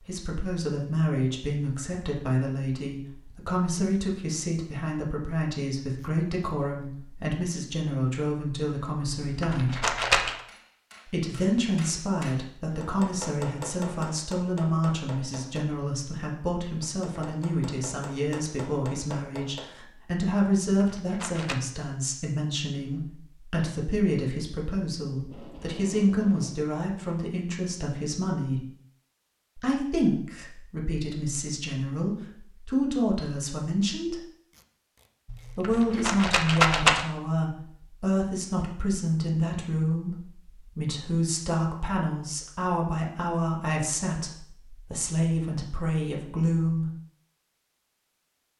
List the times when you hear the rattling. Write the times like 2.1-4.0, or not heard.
9.2-10.4, 20.6-21.6, 35.3-37.0.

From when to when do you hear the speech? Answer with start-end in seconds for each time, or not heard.
0.1-9.8, 11.1-28.6, 29.6-34.2, 35.5-46.9.